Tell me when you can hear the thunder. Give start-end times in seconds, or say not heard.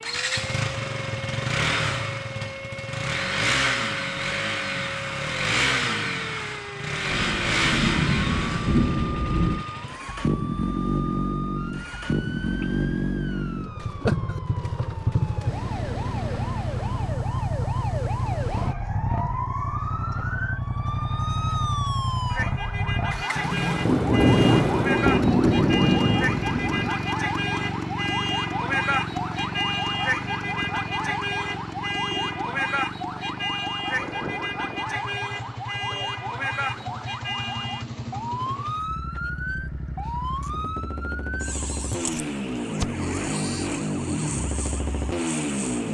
7.1-9.7, 23.9-26.9, 33.9-37.1.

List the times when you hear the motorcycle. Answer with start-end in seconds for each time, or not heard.
0.0-45.9.